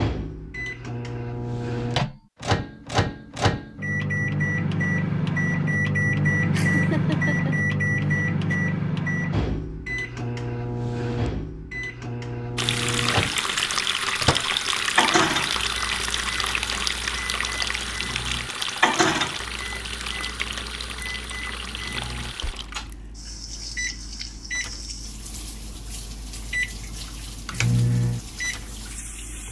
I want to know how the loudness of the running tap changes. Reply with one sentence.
The loudness of the running tap goes down.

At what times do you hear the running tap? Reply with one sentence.
You can hear the running tap from 12.6 to 29.4 s.